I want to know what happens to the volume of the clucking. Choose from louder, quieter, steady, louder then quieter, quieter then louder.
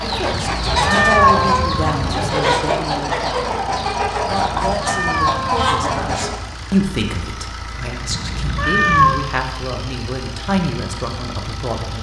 steady.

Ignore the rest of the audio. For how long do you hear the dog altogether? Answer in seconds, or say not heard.
not heard.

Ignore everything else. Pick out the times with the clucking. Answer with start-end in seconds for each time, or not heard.
0.0-6.4.